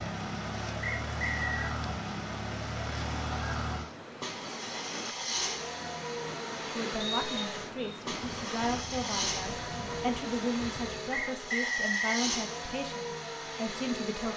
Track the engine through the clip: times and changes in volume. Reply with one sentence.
The engine can be heard from 0.0 to 14.3 s, at a steady volume.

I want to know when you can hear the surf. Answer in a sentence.
The surf can be heard from 0.0 to 11.2 s.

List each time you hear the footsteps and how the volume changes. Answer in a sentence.
You can't hear the footsteps here.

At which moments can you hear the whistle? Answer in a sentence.
You can hear the whistle from 0.8 to 1.8 s, from 7.0 to 8.0 s and from 11.1 to 12.2 s.